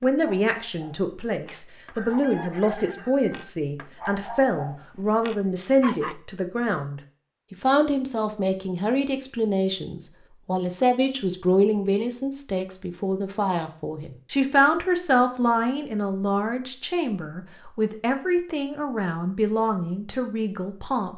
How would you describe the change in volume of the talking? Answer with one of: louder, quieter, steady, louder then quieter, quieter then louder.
steady.